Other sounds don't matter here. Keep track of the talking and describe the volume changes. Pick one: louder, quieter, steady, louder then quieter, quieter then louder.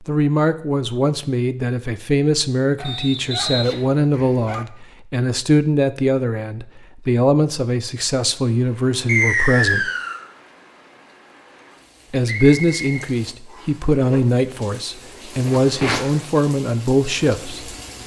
steady.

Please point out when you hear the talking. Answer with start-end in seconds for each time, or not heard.
0.0-9.9, 12.1-17.7.